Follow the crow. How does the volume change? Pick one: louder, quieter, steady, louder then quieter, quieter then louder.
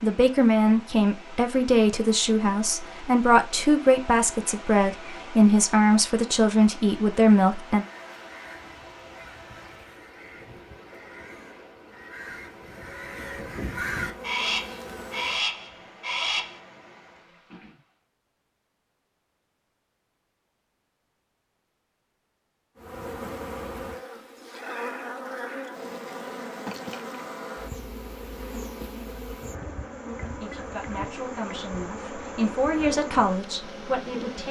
louder.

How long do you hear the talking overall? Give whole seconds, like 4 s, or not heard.
12 s.